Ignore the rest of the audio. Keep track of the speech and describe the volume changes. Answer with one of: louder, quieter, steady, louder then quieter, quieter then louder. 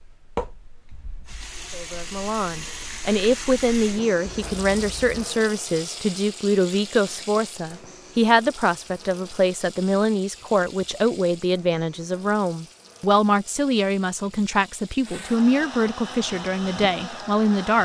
steady.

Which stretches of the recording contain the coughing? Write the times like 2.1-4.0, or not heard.
not heard.